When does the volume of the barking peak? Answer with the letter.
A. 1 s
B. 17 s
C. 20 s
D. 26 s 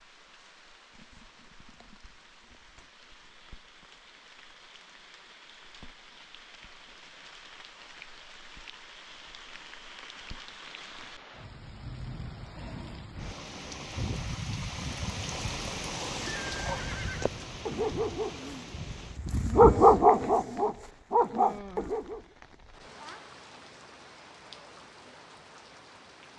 C.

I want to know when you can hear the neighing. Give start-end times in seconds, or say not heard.
16.2-17.3.